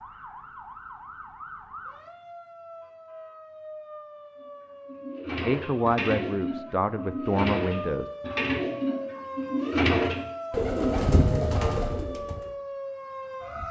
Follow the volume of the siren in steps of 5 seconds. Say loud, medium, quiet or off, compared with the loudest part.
medium, loud, loud.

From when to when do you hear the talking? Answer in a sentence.
You can hear the talking from 5.5 to 8.1 s.